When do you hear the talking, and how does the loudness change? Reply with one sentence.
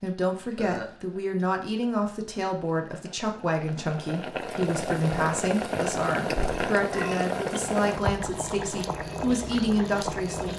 The talking can be heard from 0.0 to 10.5 s, at a steady volume.